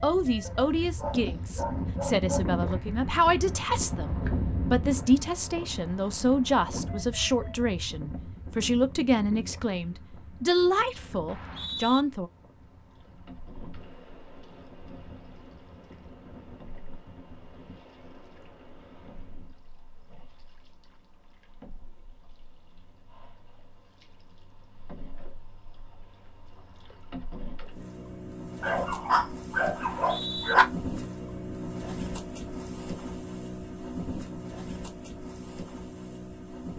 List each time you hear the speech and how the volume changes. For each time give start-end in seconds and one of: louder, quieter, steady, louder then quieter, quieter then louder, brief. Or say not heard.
0.0-12.3 steady.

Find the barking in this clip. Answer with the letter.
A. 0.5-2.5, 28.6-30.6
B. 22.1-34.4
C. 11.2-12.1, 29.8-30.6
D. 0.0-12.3
A.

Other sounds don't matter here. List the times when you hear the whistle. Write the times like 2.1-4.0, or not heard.
11.2-12.1, 29.8-30.6.